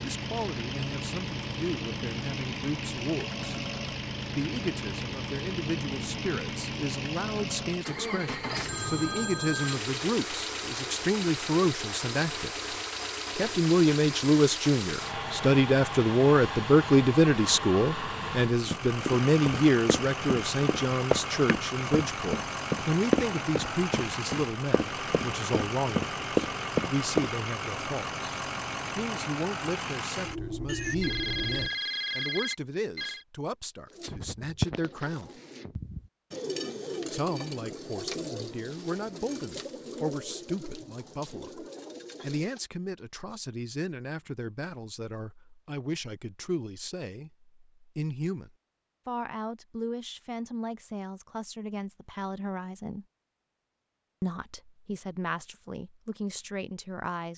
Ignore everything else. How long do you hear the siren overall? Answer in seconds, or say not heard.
not heard.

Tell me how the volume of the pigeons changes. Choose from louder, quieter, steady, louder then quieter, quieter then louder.
quieter.